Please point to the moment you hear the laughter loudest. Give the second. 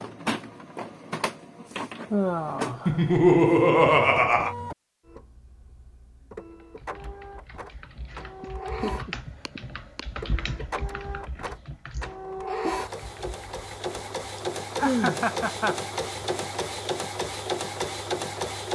3 s.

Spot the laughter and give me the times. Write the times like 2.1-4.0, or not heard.
2.9-4.5, 8.4-10.0, 14.8-16.3.